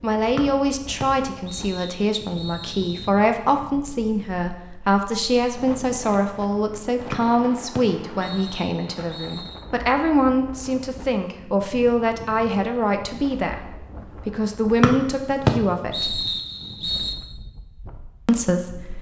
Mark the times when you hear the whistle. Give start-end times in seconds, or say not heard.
0.3-3.1, 7.1-9.6, 14.8-17.1.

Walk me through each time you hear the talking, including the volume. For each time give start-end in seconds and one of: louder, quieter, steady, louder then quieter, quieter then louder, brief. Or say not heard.
0.0-16.2 steady
18.2-18.9 brief.